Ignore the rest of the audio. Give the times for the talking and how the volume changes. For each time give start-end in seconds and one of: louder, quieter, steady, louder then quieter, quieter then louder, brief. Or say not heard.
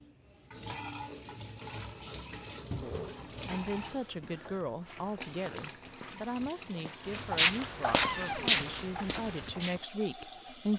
2.8-10.7 steady.